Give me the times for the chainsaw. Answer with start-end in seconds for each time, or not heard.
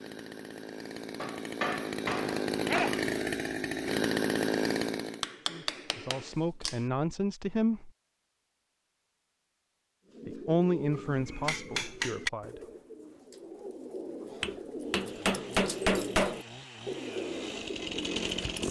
0.0-5.2, 14.8-18.6.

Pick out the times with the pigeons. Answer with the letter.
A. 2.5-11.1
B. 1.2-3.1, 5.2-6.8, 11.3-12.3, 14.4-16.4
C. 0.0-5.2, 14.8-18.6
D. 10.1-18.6
D.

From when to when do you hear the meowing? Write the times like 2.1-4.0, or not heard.
not heard.